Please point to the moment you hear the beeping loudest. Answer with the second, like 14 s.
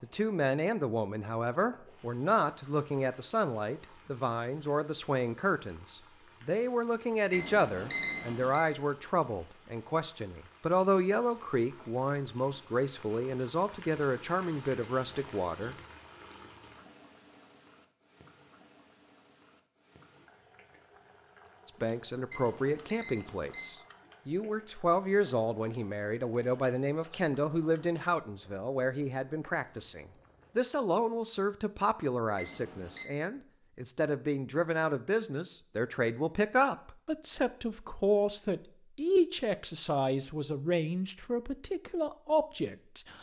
8 s.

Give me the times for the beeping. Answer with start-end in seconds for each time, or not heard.
7.3-8.7, 22.3-23.8, 32.4-33.0.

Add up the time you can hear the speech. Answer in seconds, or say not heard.
37 s.